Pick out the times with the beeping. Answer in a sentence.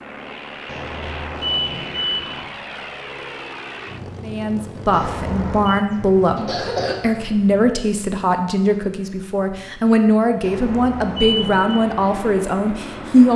You can hear the beeping from 0.7 to 2.5 s, from 4.9 to 5.8 s and from 10.4 to 11.8 s.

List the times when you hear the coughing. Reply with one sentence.
You can hear the coughing from 6.3 to 7.0 s.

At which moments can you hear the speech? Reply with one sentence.
You can hear the speech from 4.2 to 13.3 s.